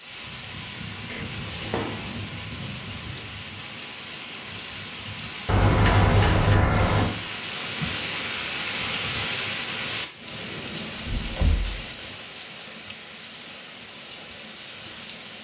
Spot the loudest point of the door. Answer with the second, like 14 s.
6 s.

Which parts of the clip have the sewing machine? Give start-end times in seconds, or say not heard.
not heard.